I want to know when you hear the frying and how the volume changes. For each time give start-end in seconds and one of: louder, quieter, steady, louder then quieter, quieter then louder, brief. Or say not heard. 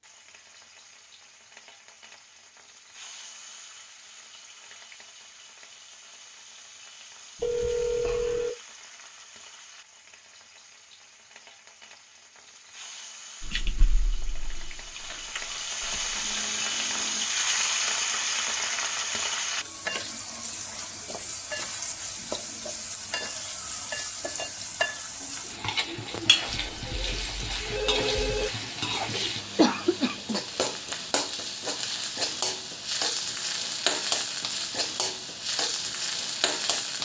0.0-36.9 louder.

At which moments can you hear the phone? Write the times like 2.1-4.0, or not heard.
7.3-8.5, 16.1-17.2, 26.4-28.5.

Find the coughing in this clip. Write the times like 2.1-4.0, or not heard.
29.6-30.4.